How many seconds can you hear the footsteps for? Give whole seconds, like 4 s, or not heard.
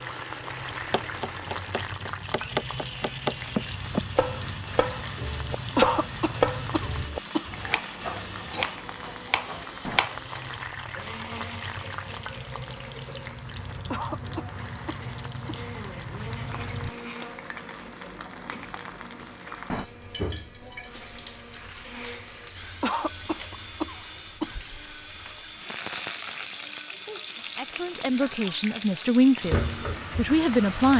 not heard.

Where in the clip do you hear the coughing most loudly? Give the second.
6 s.